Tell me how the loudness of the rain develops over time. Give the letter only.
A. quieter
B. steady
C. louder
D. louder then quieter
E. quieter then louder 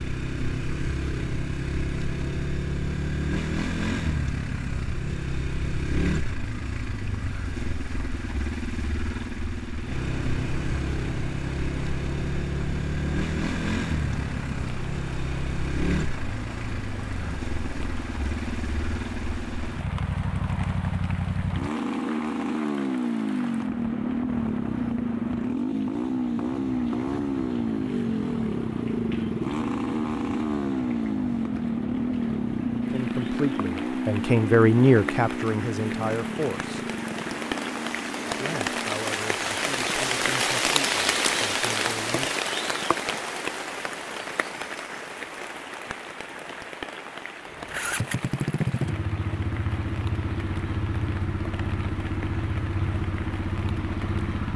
D.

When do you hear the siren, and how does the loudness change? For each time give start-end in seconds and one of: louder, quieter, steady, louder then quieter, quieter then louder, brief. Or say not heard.
not heard.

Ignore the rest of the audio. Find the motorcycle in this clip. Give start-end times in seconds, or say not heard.
0.0-39.0, 47.5-54.5.